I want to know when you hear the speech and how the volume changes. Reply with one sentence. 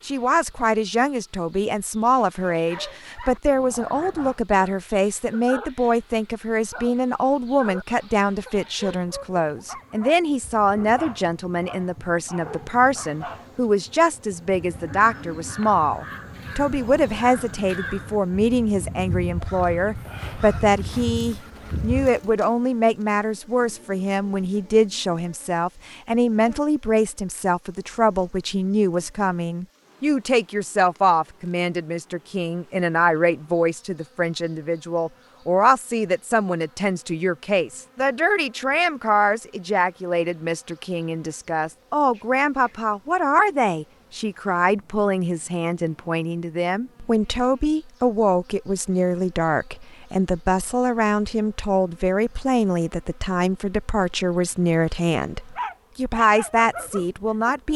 You can hear the speech from 0.1 to 57.7 s, at a steady volume.